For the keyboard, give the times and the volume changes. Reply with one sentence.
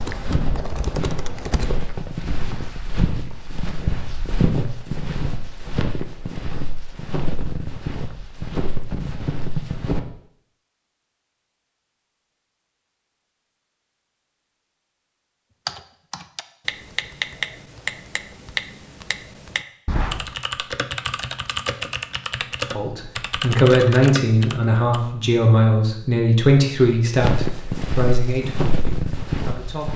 The keyboard can be heard briefly from 0.0 to 1.7 s; and from 15.7 to 25.0 s, at a steady volume.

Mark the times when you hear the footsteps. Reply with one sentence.
The footsteps can be heard from 0.0 to 10.0 s and from 27.1 to 29.9 s.